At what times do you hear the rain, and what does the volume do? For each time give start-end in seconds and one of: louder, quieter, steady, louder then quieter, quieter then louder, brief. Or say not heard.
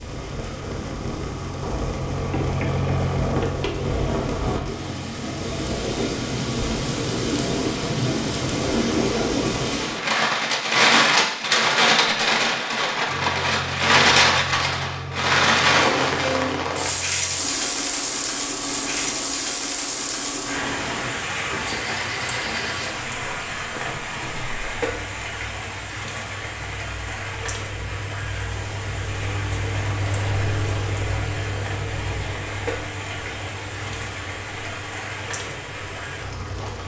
0.0-36.8 louder then quieter.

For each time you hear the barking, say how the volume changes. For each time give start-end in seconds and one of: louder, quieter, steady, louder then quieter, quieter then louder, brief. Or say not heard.
not heard.